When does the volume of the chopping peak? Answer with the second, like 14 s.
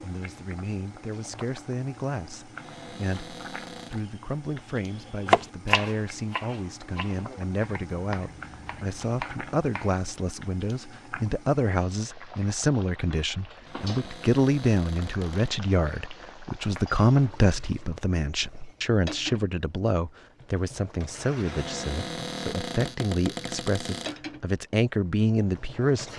5 s.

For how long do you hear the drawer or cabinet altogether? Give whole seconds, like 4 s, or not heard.
6 s.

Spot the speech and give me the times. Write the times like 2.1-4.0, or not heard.
0.0-26.1.